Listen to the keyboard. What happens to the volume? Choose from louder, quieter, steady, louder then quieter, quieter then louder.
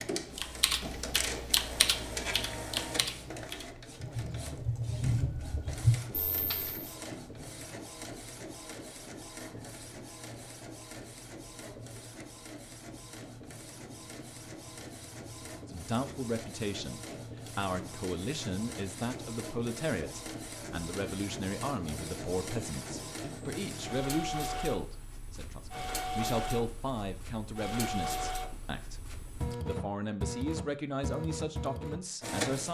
quieter then louder.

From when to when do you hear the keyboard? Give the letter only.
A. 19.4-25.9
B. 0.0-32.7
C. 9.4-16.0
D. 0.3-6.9
D.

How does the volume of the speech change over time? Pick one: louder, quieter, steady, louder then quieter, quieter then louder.
steady.